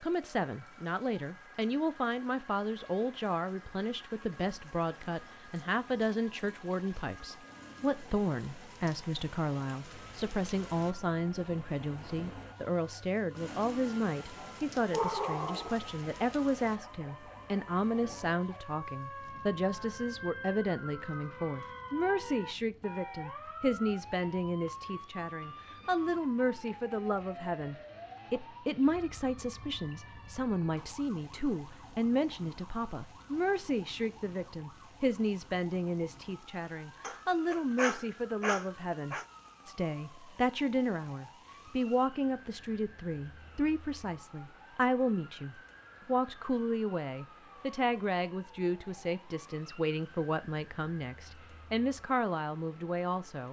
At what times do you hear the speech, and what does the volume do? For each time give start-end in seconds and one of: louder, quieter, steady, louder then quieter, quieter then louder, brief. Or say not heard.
0.0-53.4 steady.